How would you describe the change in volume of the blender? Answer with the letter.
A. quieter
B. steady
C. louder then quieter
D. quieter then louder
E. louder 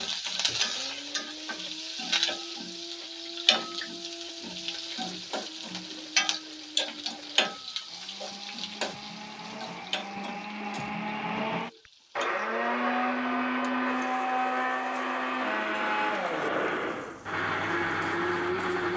E.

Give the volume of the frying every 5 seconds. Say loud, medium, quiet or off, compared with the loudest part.
loud, loud, quiet, quiet.